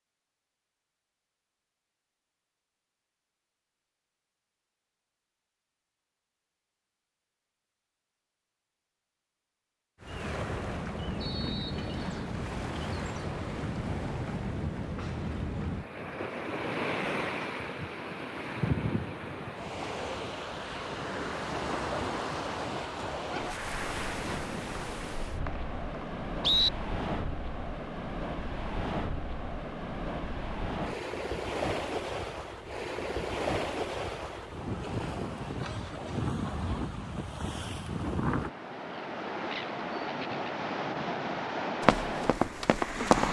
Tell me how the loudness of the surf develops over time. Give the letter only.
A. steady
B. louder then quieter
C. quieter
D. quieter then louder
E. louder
A.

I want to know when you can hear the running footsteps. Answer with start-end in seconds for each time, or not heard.
41.8-43.2.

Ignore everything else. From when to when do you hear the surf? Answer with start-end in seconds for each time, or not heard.
10.0-43.2.